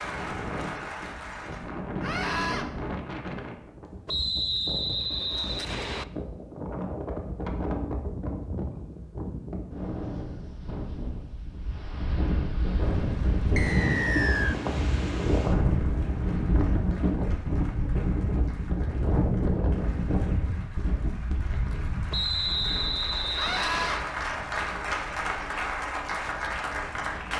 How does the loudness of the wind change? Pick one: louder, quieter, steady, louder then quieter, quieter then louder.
louder then quieter.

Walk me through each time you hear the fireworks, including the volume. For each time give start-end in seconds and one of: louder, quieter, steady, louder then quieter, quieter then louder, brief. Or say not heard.
not heard.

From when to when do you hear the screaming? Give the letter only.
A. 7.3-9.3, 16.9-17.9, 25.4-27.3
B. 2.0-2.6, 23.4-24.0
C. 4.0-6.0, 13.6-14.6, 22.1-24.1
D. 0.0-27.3
B.